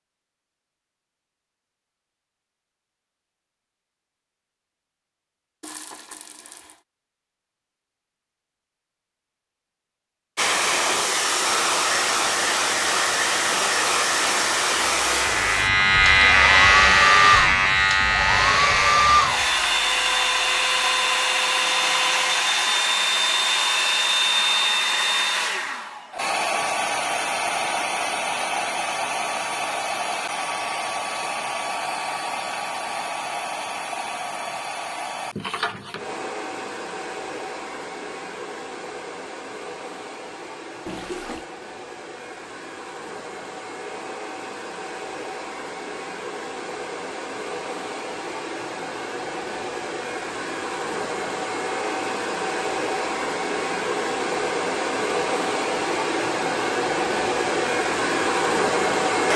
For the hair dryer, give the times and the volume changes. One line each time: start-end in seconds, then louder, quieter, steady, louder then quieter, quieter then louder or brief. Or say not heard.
10.3-59.3 quieter then louder.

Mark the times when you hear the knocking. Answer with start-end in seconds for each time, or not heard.
not heard.